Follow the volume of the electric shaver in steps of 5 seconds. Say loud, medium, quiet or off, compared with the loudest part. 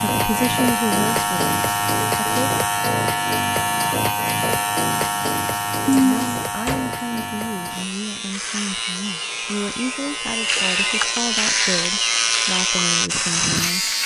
loud, medium, loud.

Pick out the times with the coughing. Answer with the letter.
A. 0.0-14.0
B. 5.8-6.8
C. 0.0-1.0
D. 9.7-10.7
B.